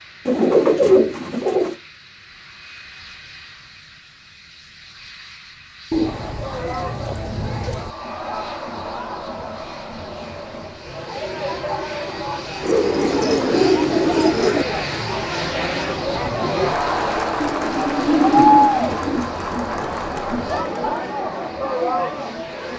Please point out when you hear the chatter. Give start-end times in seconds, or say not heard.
6.0-22.7.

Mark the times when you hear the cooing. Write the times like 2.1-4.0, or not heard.
0.2-1.8, 5.9-8.0, 12.6-14.7, 17.4-19.2.